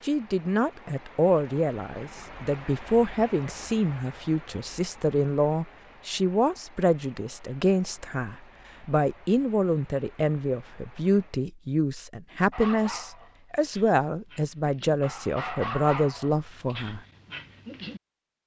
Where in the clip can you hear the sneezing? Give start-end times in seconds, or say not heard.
not heard.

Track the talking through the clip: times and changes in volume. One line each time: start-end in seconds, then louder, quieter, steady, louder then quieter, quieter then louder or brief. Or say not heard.
0.0-17.0 steady.